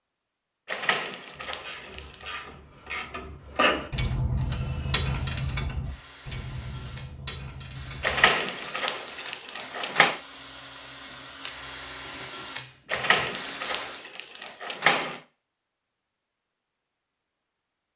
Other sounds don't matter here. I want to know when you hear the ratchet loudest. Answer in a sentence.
The volume of the ratchet peaks at 4 seconds.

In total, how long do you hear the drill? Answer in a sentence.
You can hear the drill for 10 seconds altogether.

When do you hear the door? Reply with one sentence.
The door can be heard from 0.7 to 2.2 s, from 8.0 to 10.2 s and from 12.9 to 15.2 s.